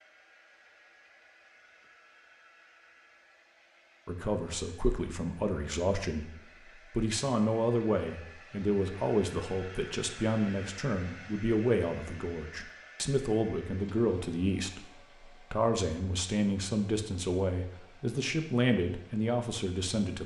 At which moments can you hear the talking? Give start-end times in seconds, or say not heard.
4.0-20.2.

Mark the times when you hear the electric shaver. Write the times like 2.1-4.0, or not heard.
not heard.